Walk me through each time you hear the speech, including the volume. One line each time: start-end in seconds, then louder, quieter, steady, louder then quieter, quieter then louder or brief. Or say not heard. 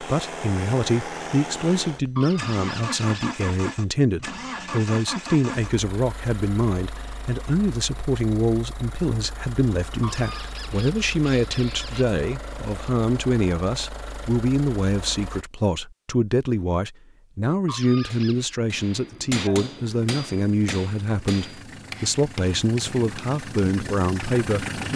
0.0-24.9 steady.